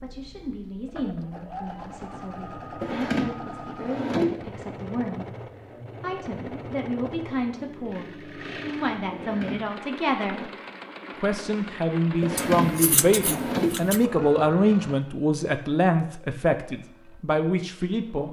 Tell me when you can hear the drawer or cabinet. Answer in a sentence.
The drawer or cabinet can be heard from 2.8 to 4.3 s, from 9.1 to 10.5 s and from 12.2 to 13.8 s.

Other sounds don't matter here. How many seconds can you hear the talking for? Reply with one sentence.
The talking can be heard for 17 seconds in total.